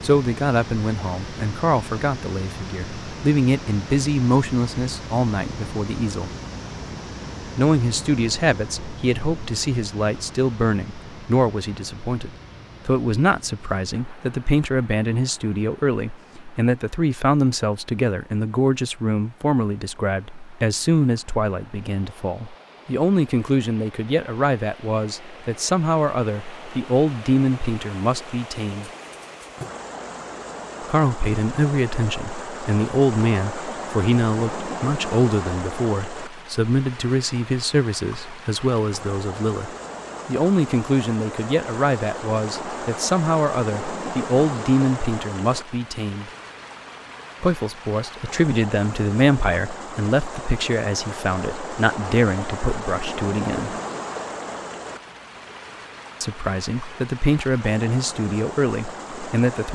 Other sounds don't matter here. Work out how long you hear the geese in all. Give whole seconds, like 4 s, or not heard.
not heard.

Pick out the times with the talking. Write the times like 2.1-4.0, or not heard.
0.0-6.3, 7.5-28.9, 30.9-46.3, 47.4-53.8, 56.2-59.6.